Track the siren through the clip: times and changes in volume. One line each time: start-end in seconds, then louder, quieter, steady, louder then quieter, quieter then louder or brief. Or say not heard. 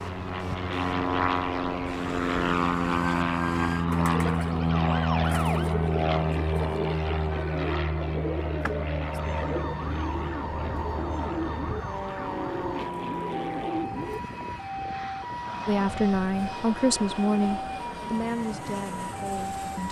0.0-19.8 steady.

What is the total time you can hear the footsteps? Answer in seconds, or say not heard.
not heard.